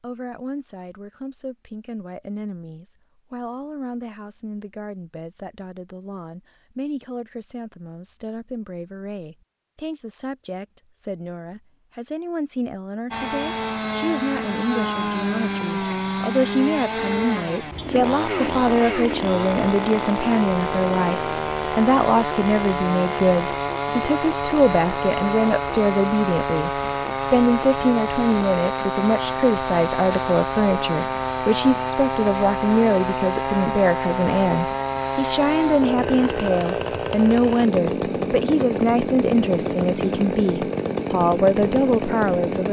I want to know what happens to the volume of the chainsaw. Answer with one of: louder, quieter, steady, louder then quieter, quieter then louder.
steady.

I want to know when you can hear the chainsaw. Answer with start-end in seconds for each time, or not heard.
13.1-42.6.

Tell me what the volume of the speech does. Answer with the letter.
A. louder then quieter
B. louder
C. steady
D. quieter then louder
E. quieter
B.